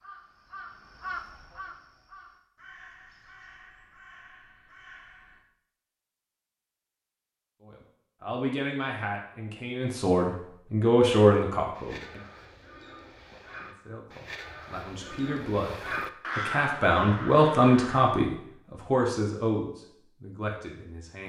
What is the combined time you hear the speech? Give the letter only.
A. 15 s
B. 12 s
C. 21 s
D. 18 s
B.